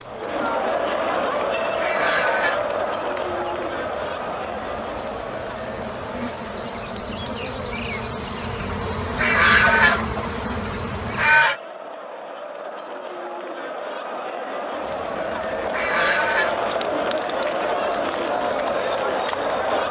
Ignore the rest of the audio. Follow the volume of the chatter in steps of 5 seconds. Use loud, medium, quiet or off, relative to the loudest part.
loud, medium, medium, loud.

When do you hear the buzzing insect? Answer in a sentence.
You can hear the buzzing insect from 0.0 to 11.4 s and from 14.7 to 19.8 s.